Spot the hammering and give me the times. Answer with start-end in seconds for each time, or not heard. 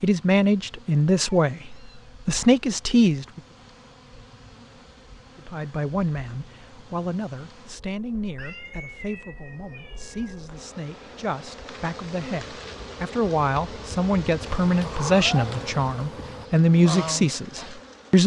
not heard.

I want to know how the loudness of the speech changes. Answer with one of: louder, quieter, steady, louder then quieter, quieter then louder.
quieter then louder.